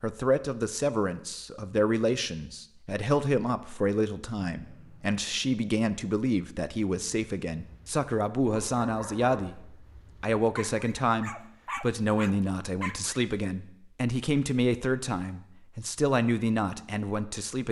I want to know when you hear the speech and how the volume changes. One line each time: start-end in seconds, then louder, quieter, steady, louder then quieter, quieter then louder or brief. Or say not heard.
0.0-17.6 steady.